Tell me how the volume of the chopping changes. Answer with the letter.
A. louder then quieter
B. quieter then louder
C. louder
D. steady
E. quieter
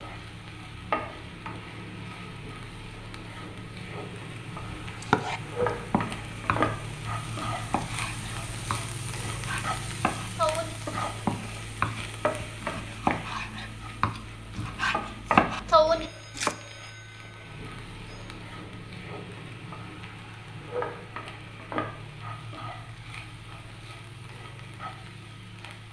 C.